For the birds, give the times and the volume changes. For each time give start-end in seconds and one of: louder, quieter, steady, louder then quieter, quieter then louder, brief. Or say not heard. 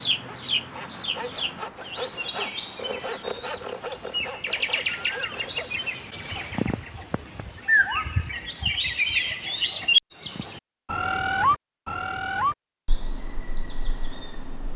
0.0-14.7 louder then quieter.